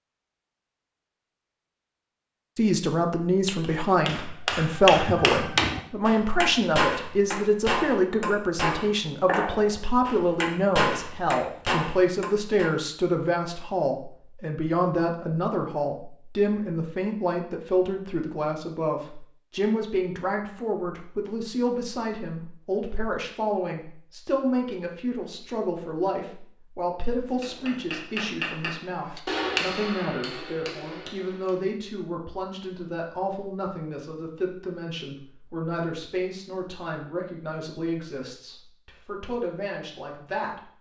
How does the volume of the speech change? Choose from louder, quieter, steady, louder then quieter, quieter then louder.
quieter.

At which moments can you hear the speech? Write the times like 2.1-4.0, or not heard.
2.5-40.7.